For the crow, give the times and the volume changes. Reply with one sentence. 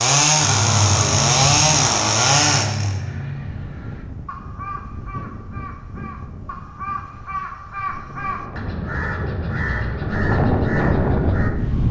You can hear the crow from 0.4 to 11.5 s, getting quieter then louder.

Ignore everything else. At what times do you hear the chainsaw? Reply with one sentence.
You can hear the chainsaw from 0.0 to 3.0 s.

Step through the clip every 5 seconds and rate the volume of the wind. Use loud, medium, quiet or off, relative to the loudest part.
quiet, quiet, loud.